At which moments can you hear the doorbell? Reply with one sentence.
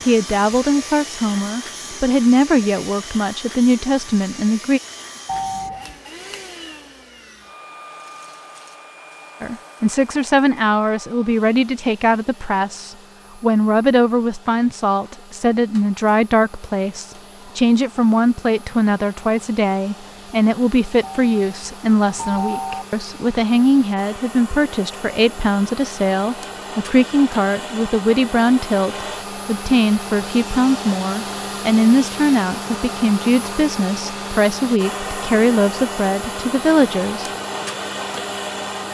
The doorbell can be heard from 5.2 to 6.0 s and from 21.0 to 22.9 s.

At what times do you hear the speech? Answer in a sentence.
You can hear the speech from 0.1 to 4.8 s and from 9.4 to 37.2 s.